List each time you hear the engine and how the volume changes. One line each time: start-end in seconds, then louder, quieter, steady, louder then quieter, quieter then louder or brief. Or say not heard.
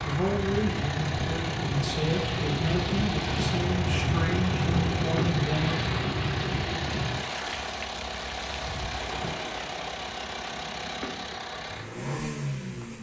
0.0-12.9 steady.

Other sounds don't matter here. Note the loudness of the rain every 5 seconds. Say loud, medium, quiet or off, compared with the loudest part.
loud, loud, off.